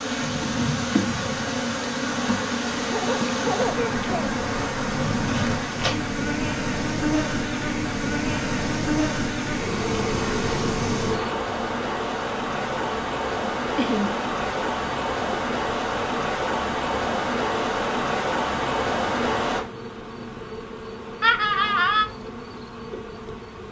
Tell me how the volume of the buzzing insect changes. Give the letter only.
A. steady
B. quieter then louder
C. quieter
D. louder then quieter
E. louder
C.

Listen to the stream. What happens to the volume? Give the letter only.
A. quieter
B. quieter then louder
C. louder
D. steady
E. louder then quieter
C.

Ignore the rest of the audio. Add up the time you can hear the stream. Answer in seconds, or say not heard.
20 s.